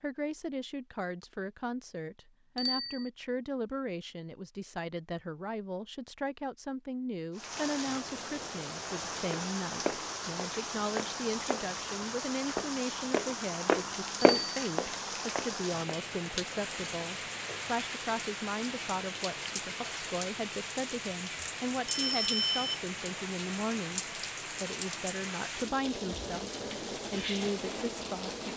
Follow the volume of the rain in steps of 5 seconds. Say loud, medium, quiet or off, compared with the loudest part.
off, loud, loud, loud, loud, loud.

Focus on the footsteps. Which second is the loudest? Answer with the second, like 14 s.
14 s.